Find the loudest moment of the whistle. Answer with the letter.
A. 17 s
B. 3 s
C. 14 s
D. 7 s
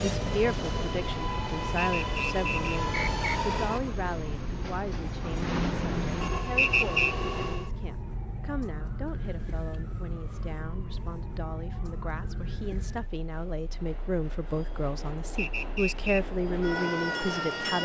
D.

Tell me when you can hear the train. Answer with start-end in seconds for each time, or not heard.
0.0-7.7, 12.8-17.8.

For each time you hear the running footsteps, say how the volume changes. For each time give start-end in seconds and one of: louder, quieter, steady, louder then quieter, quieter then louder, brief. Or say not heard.
not heard.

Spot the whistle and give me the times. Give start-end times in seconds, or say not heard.
1.8-3.4, 6.5-7.2, 15.3-16.2.